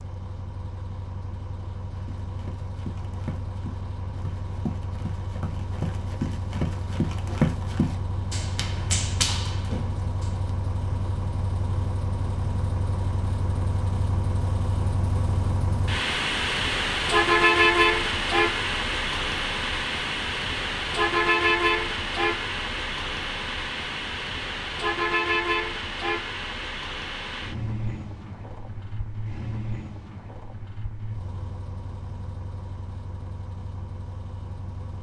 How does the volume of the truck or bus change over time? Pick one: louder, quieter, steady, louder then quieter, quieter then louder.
louder then quieter.